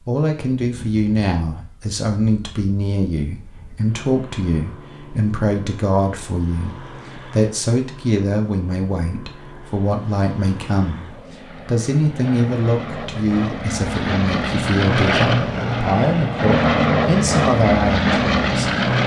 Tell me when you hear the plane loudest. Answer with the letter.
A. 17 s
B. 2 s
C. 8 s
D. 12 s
A.